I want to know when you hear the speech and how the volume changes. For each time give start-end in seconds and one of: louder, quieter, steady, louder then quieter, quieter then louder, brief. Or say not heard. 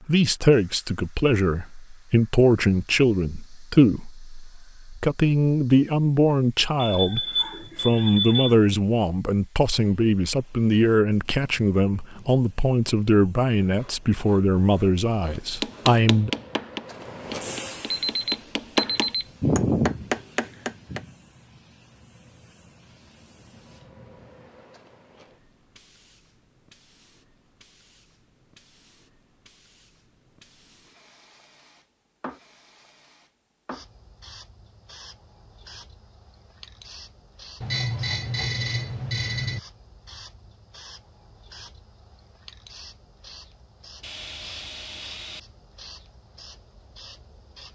0.1-16.3 steady.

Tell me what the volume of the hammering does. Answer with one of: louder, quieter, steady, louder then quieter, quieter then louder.
quieter then louder.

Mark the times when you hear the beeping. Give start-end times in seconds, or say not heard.
6.8-8.6, 17.9-19.2, 37.6-39.6.